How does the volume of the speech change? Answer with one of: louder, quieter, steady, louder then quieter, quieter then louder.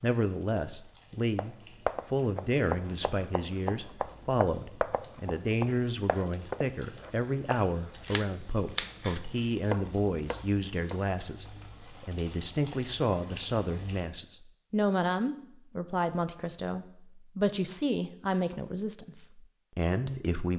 steady.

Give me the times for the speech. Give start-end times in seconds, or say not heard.
0.0-20.5.